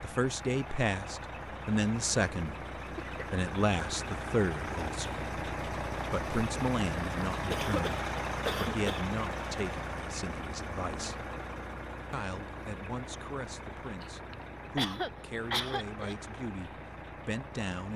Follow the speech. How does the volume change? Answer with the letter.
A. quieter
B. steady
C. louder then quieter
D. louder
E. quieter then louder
A.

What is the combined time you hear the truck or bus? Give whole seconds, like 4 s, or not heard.
18 s.